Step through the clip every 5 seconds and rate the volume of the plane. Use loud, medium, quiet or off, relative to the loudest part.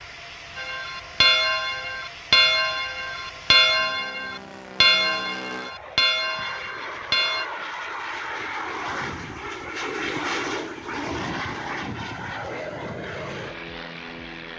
medium, loud, loud.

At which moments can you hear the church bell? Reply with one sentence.
The church bell can be heard from 0.6 to 7.5 s.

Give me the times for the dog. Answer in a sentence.
The dog can't be heard in this clip.